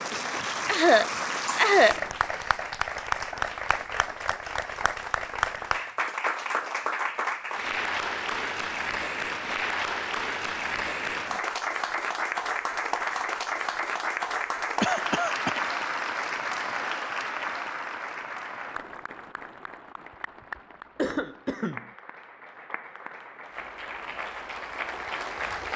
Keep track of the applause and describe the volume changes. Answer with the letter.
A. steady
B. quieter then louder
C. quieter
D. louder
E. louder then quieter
C.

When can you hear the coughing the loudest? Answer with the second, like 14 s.
2 s.